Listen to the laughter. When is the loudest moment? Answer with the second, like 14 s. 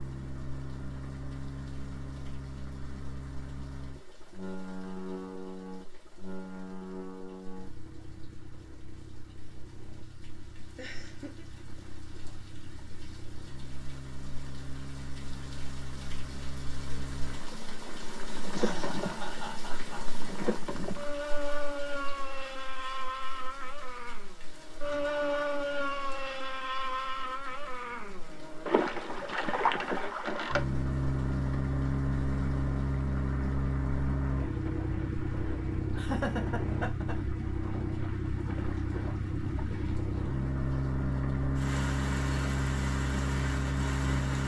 36 s.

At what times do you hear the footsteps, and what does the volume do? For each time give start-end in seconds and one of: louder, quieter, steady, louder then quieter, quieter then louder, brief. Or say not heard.
not heard.